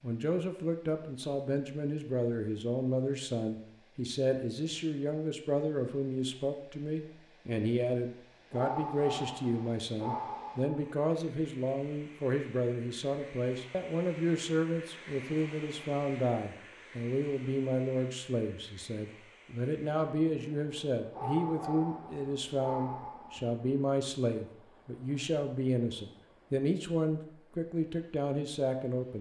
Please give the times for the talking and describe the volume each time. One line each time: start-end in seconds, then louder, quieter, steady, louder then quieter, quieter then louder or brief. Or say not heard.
0.0-29.1 steady.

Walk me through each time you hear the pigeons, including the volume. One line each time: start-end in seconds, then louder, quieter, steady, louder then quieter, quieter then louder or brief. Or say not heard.
not heard.